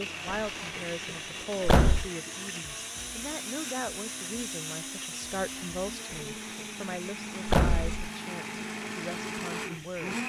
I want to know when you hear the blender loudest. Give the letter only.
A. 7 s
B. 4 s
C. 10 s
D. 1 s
C.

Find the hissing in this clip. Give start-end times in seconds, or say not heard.
0.0-10.2.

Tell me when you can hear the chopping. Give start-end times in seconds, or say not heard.
not heard.